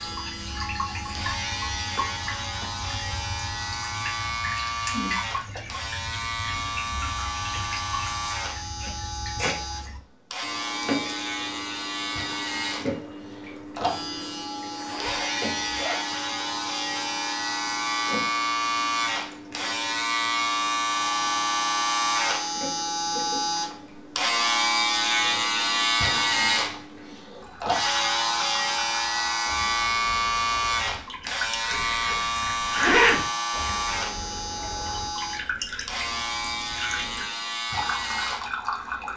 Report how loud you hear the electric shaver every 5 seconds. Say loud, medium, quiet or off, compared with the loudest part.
medium, medium, medium, loud, loud, loud, loud, medium.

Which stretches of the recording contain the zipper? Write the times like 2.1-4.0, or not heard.
1.9-2.9, 14.8-16.1, 31.6-33.2.